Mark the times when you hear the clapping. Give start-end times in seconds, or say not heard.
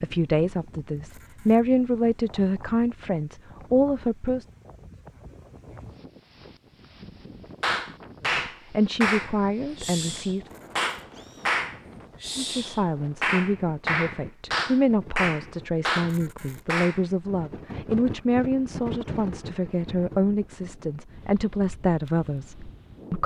7.6-17.1.